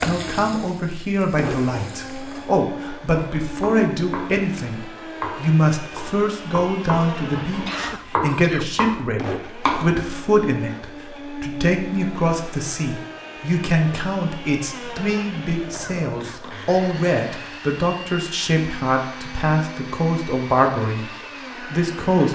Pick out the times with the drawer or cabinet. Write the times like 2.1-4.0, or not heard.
not heard.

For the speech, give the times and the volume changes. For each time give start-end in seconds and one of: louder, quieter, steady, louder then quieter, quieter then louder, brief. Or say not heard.
0.1-22.3 steady.